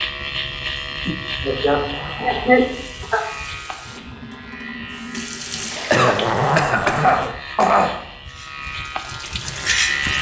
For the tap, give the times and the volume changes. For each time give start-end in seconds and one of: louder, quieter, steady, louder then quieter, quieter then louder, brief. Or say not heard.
2.5-6.5 louder
8.2-10.1 brief.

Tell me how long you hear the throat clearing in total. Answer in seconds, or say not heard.
4 s.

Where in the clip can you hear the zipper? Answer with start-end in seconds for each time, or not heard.
1.4-2.7, 5.9-7.3.